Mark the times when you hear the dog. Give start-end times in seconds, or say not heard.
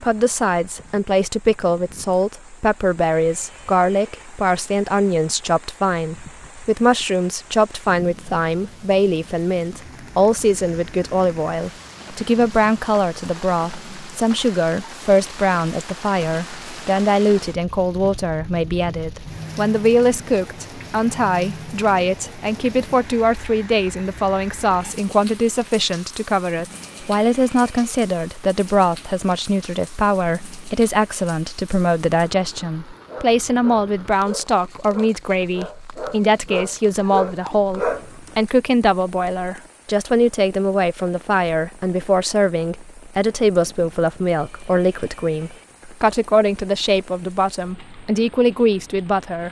33.0-38.5.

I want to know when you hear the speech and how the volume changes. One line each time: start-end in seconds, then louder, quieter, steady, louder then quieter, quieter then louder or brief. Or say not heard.
0.0-49.4 steady.